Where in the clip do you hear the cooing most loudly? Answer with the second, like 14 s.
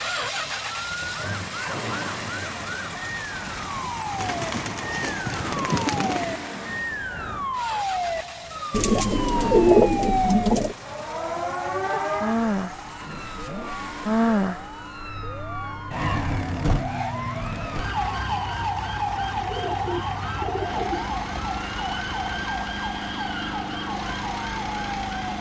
10 s.